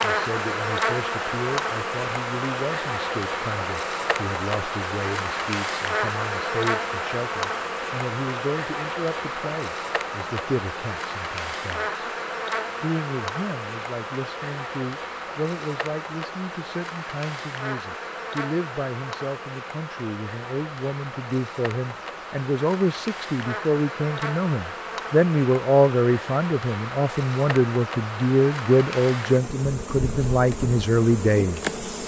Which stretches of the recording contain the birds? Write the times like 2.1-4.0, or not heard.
not heard.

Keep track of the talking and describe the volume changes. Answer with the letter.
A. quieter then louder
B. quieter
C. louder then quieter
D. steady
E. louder
E.